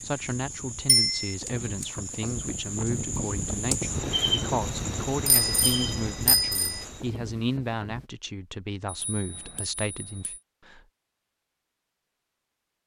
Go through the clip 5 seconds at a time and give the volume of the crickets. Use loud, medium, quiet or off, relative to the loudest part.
loud, loud, off.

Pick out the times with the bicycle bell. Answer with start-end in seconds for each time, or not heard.
0.8-1.4, 5.0-6.8, 8.8-10.4.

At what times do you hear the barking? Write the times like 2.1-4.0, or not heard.
not heard.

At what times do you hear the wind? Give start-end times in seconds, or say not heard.
0.0-8.1.